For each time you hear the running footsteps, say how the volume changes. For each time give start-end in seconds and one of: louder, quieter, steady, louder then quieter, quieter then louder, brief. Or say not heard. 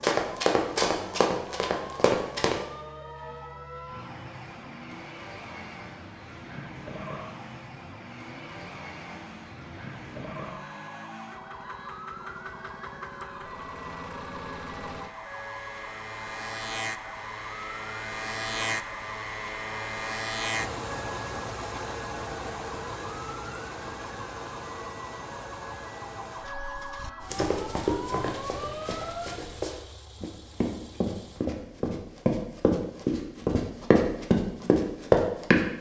0.0-2.5 brief
27.2-35.6 louder.